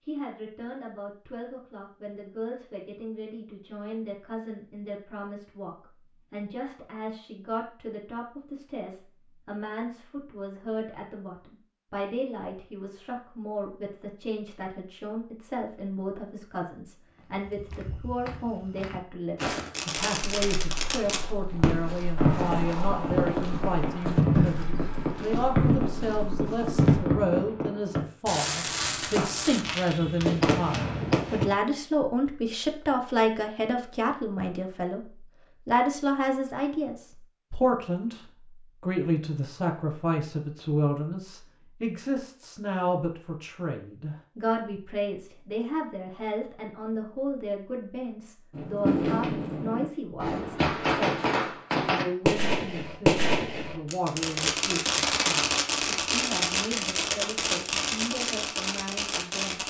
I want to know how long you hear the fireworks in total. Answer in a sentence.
The fireworks can be heard for 23 seconds in total.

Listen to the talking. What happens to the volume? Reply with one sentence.
The loudness of the talking goes up, then down.